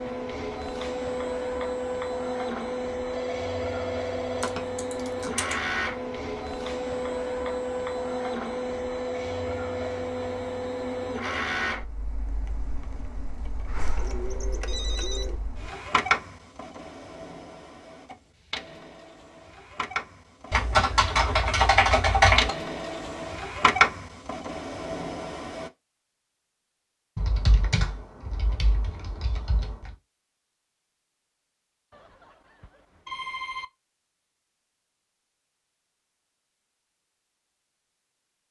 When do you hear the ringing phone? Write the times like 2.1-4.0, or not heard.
3.1-4.5, 13.8-15.4, 31.9-33.6.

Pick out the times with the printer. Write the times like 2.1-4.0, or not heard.
0.0-25.7.